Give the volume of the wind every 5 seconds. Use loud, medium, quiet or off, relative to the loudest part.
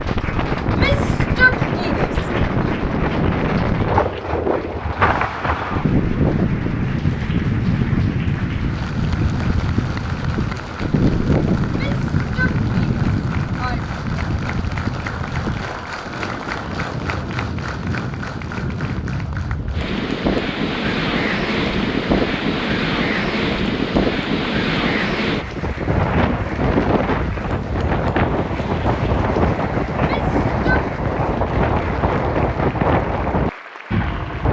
loud, loud, loud, medium, loud, loud, loud.